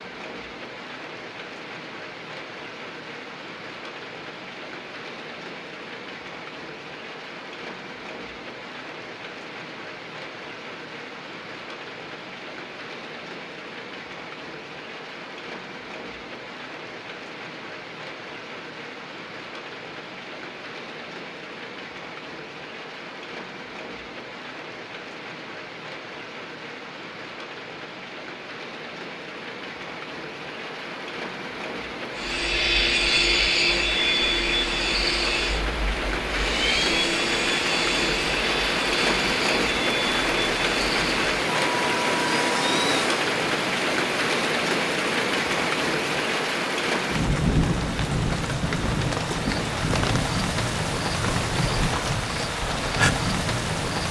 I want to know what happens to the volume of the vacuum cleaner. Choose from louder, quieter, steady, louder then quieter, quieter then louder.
quieter.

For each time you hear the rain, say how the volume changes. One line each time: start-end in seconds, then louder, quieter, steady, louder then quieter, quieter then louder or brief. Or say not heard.
0.0-54.0 louder.